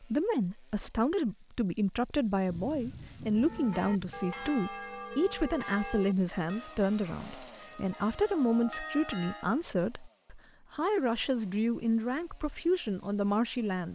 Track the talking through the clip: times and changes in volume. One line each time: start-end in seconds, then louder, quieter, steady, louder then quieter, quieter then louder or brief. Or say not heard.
0.0-13.9 steady.